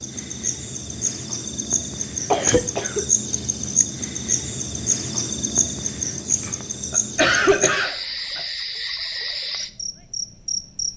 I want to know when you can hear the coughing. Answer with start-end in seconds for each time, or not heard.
2.3-3.0, 6.4-8.4.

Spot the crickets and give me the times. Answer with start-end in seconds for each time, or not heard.
0.0-10.9.